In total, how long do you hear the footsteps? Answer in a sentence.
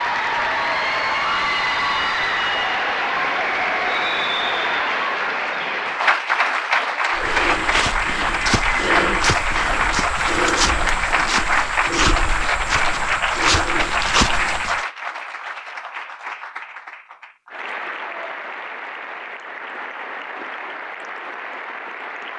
You can hear the footsteps for 8 seconds altogether.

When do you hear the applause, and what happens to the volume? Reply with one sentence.
You can hear the applause from 0.0 to 22.3 s, getting quieter.